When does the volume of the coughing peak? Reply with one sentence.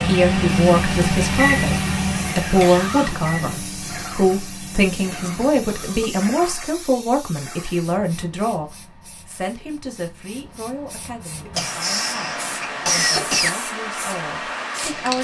The loudest moment of the coughing is at 13 seconds.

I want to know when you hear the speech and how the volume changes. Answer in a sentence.
You can hear the speech from 0.0 to 15.1 s, getting quieter.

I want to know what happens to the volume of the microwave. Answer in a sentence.
The volume of the microwave goes down.